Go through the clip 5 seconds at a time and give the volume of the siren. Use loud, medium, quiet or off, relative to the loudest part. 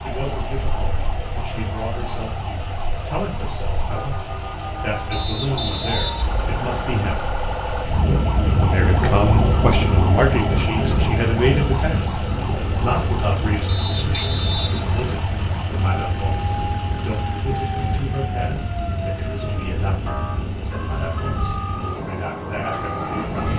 medium, loud, loud, medium, medium.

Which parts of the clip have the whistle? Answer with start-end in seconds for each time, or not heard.
5.1-6.9, 13.7-15.0.